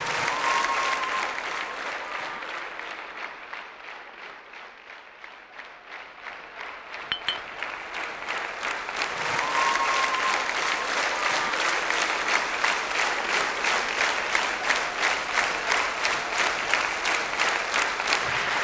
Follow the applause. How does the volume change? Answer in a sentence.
The loudness of the applause goes down, then up.